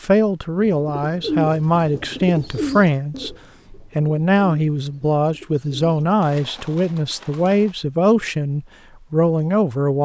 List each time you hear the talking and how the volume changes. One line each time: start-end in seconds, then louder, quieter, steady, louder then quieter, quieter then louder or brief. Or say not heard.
0.0-10.0 steady.